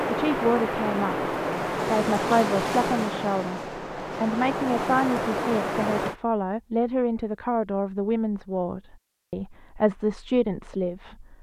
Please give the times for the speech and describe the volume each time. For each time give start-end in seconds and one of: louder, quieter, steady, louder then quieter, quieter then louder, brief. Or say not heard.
0.1-11.3 steady.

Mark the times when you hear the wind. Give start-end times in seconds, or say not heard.
0.0-6.2.